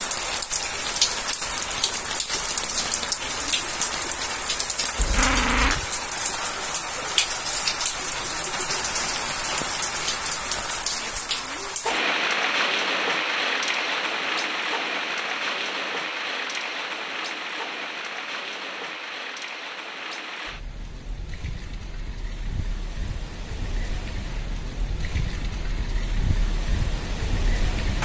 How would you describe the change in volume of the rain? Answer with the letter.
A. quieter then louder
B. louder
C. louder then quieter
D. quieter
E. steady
D.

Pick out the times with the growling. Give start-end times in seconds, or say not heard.
5.0-5.8.